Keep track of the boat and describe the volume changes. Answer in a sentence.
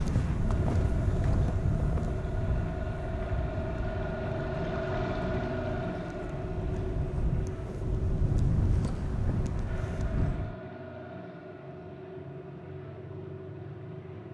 The loudness of the boat goes up, then down.